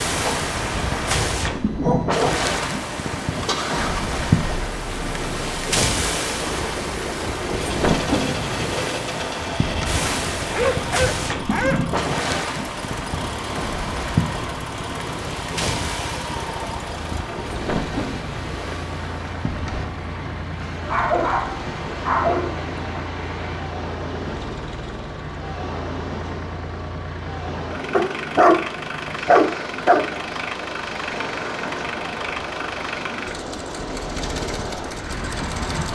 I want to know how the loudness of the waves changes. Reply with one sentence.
The volume of the waves goes down.